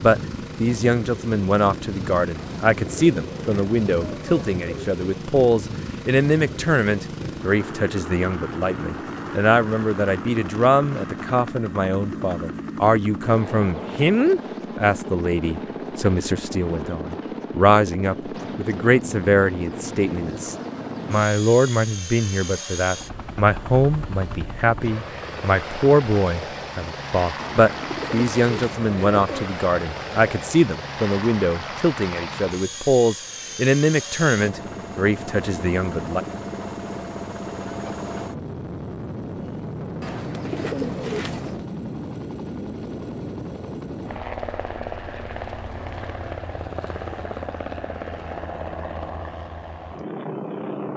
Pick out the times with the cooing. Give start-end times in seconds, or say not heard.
2.4-4.9, 27.4-29.5, 40.0-41.6.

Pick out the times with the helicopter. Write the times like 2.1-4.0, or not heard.
0.0-50.9.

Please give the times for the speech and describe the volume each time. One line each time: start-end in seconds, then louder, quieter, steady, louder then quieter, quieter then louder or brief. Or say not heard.
0.0-36.2 steady.